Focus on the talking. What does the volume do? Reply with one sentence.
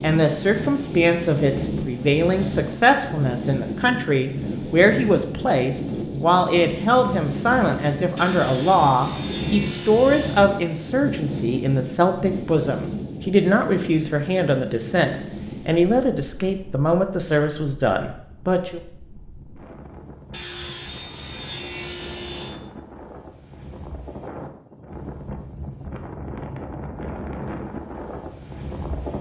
The volume of the talking stays about the same.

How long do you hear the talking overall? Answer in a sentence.
The talking can be heard for 19 seconds in total.